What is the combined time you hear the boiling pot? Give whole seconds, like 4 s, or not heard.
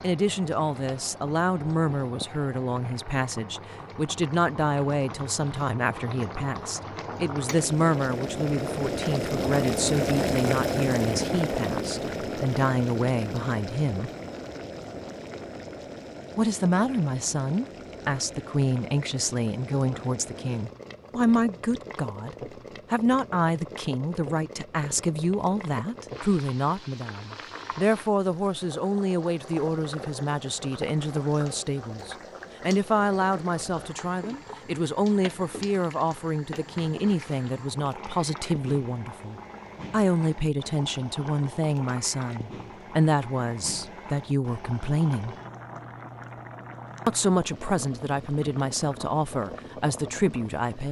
51 s.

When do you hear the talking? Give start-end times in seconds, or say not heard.
0.0-14.1, 16.4-45.4, 47.0-50.8.